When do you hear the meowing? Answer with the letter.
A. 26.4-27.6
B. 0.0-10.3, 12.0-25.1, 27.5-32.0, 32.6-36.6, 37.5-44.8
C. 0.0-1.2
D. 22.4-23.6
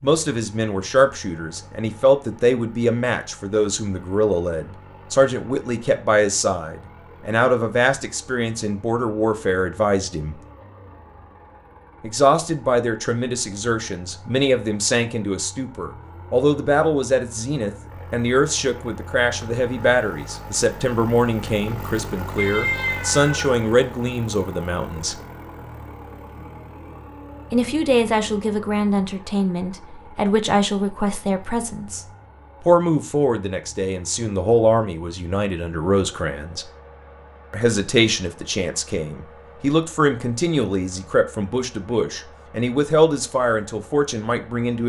D.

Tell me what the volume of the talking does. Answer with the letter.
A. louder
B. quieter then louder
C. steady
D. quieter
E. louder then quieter
C.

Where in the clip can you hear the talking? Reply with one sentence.
The talking can be heard from 0.0 to 10.3 s, from 12.0 to 25.1 s, from 27.5 to 32.0 s, from 32.6 to 36.6 s and from 37.5 to 44.8 s.